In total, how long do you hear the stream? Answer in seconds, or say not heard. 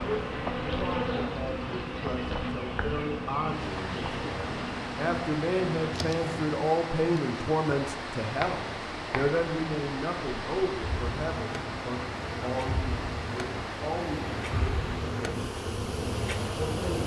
17 s.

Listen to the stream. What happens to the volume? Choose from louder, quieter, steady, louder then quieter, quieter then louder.
louder.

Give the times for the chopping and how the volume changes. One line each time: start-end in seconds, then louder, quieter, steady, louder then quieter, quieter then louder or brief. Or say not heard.
not heard.